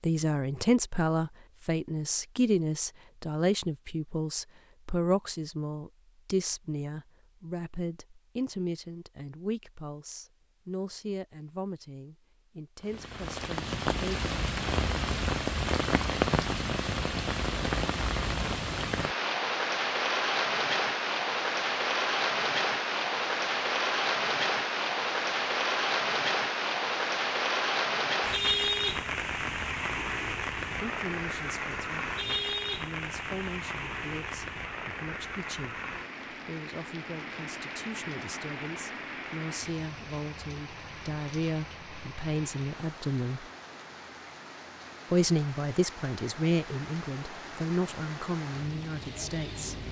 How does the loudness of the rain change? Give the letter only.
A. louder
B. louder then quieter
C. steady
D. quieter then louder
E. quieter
E.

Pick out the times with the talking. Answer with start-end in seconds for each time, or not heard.
0.0-14.3, 30.6-43.5, 45.1-49.8.